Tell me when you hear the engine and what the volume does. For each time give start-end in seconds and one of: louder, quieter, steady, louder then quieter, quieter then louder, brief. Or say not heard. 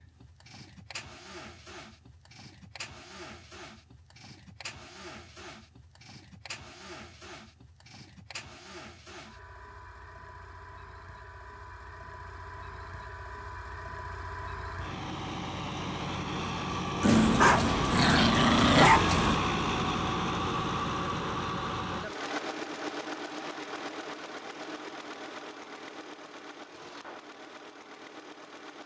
0.0-28.8 louder then quieter.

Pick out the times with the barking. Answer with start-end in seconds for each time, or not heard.
17.0-19.4.